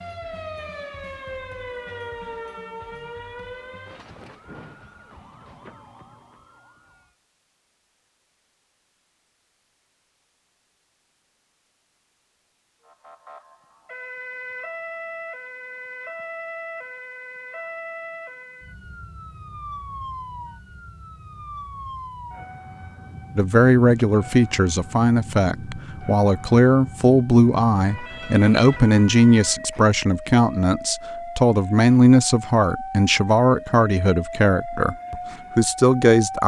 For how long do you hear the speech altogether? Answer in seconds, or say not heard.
13 s.